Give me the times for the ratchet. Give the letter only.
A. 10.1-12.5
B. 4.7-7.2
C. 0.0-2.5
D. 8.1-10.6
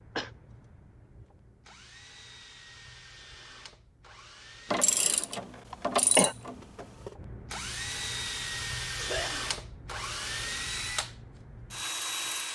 B.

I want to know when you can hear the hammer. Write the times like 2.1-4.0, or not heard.
not heard.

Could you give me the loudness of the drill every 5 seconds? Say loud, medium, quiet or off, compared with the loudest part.
quiet, loud, loud.